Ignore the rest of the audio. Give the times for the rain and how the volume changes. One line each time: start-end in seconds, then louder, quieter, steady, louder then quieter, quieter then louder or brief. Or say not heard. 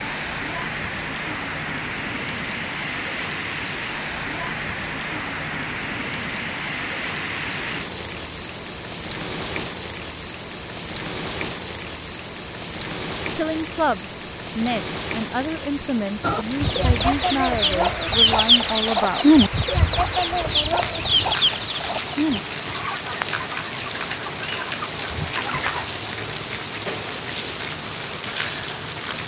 0.0-29.2 steady.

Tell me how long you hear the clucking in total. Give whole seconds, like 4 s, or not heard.
10 s.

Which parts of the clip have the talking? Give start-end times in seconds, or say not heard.
13.3-19.4.